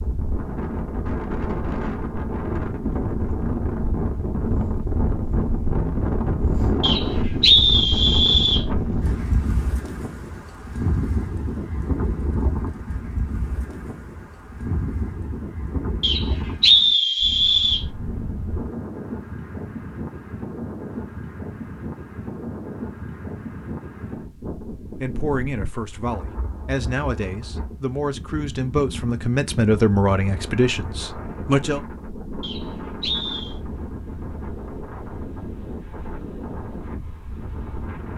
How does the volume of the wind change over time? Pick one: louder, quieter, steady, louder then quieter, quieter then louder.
quieter.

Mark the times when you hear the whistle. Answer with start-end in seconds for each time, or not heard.
6.8-8.7, 16.0-17.9, 32.4-33.5.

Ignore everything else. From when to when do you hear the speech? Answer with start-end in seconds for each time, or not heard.
25.0-31.8.